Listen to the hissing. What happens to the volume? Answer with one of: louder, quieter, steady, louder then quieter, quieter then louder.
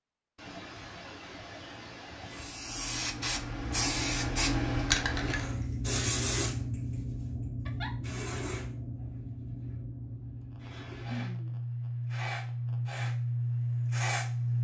quieter then louder.